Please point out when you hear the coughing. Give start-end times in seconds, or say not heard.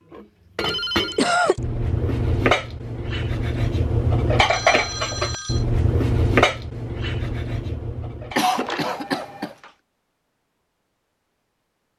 1.1-1.6, 8.3-9.6.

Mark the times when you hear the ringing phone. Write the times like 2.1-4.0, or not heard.
0.6-1.2, 4.5-5.7, 8.5-9.7.